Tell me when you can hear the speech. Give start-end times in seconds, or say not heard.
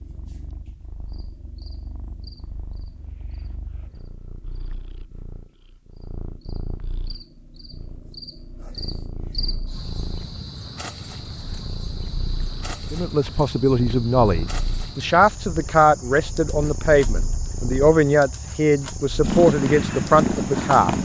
12.9-21.0.